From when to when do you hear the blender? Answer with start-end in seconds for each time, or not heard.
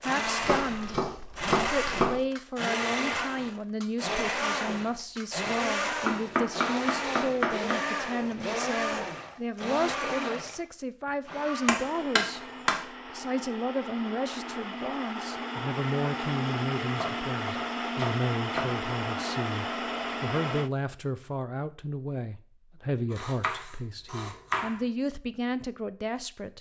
0.0-20.7.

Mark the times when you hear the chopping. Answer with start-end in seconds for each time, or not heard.
0.4-2.2, 6.0-7.8, 11.7-12.8, 16.9-18.9, 23.1-24.8.